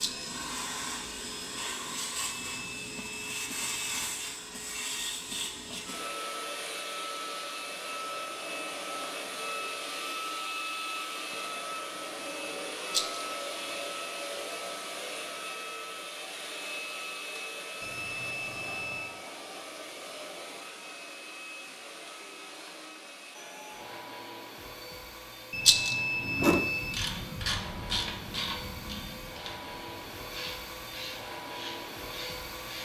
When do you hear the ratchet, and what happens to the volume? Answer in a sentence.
The ratchet can be heard from 26.2 to 32.7 s, getting quieter.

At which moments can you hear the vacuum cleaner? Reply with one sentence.
You can hear the vacuum cleaner from 0.0 to 32.7 s.